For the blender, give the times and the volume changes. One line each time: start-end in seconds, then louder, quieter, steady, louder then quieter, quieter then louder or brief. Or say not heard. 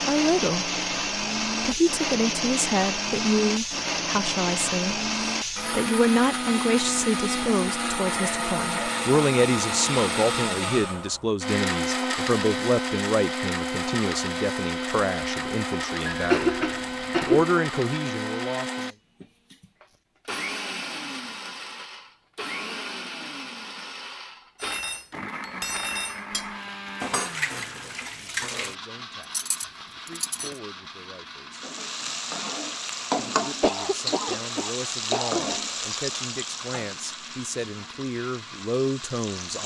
0.0-39.6 quieter.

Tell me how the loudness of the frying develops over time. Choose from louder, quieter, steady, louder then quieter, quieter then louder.
quieter.